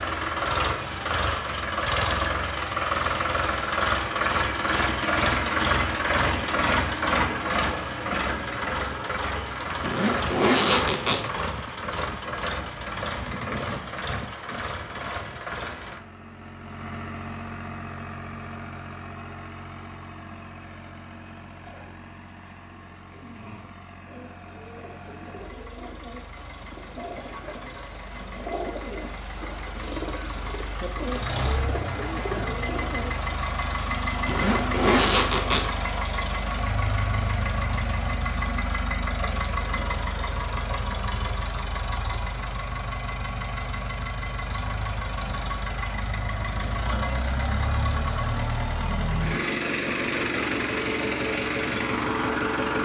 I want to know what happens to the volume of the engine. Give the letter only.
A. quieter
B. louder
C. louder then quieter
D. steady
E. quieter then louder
E.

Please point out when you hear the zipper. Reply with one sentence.
You can hear the zipper from 9.8 to 11.3 s and from 34.2 to 35.8 s.